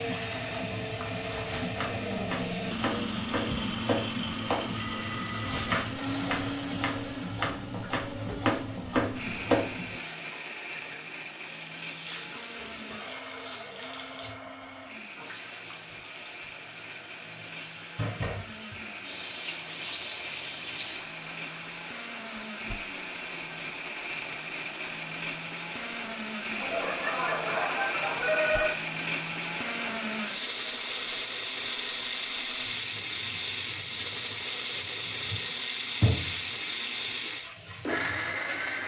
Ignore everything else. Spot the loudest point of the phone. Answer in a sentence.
The loudest moment of the phone is at 28 seconds.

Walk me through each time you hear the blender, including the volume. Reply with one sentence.
You can hear the blender from 0.0 to 38.8 s, getting quieter then louder.